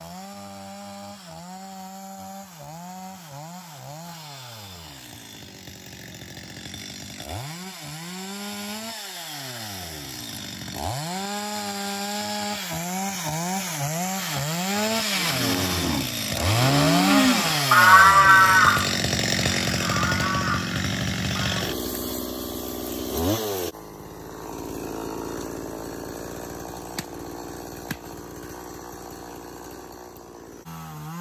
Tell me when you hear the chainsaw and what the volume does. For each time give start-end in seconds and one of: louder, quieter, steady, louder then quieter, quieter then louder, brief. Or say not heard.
0.0-31.1 louder then quieter.